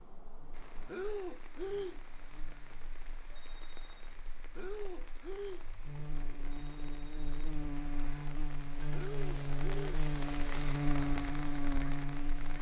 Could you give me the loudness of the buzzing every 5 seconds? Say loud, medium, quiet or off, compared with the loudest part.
quiet, medium, loud.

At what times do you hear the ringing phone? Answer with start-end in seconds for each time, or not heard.
3.3-4.2, 6.5-7.5.